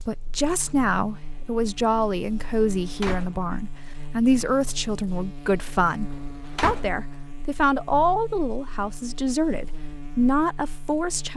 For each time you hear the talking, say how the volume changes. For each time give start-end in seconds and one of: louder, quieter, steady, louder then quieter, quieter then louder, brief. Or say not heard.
0.1-11.3 steady.